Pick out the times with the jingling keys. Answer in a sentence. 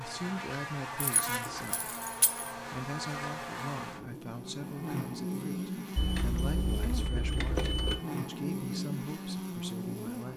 You can hear the jingling keys from 1.0 to 2.5 s and from 6.0 to 8.0 s.